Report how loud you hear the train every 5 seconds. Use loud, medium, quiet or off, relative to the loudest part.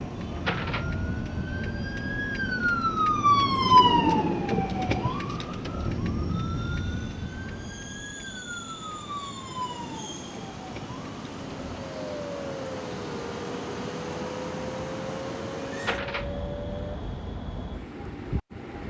medium, medium, loud, loud.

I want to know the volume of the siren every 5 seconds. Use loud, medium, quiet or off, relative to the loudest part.
loud, medium, quiet, quiet.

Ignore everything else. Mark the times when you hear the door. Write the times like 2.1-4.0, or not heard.
0.3-1.0, 15.8-16.3.